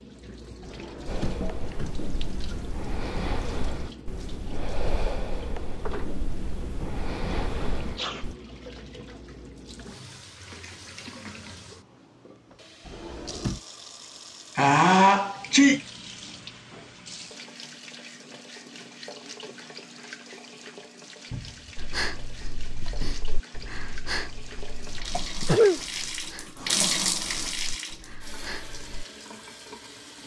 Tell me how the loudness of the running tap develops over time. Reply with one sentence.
The volume of the running tap goes up.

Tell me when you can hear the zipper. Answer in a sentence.
The zipper can't be heard in this clip.